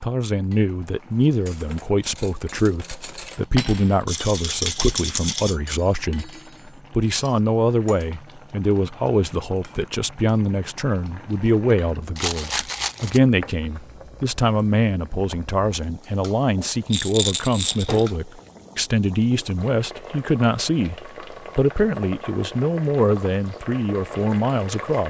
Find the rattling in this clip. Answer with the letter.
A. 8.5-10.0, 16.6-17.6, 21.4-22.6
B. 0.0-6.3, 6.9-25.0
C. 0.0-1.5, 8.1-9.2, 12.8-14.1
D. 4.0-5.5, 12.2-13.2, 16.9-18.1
D.